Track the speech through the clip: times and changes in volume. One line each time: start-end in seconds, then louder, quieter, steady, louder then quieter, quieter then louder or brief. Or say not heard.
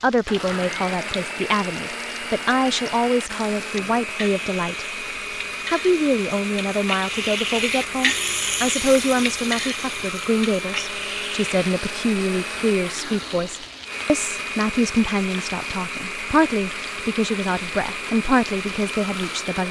0.0-4.8 steady
5.7-19.6 steady.